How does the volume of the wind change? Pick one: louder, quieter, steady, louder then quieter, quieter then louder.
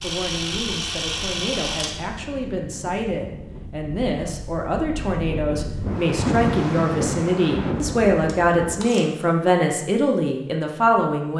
louder.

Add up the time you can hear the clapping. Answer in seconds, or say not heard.
not heard.